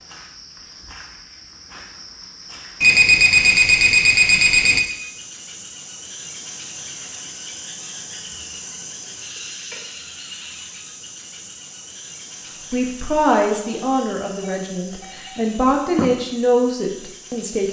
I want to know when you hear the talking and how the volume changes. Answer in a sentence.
You can hear the talking from 12.7 to 17.6 s, getting quieter then louder.